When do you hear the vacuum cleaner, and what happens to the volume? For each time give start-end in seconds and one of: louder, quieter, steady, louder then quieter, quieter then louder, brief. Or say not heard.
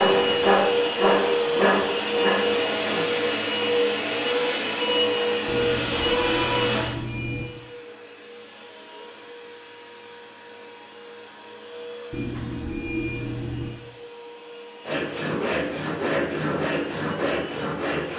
0.0-18.1 quieter.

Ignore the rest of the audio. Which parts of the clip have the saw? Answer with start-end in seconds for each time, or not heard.
0.0-3.0, 14.8-18.1.